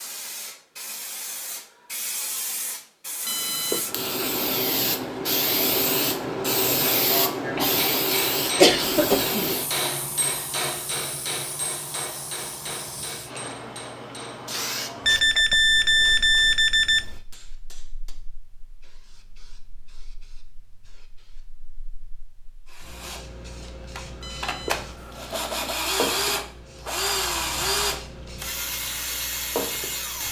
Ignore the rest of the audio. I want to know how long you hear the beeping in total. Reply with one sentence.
The beeping can be heard for 5 seconds in total.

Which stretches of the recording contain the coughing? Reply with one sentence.
The coughing can be heard from 8.6 to 9.5 s.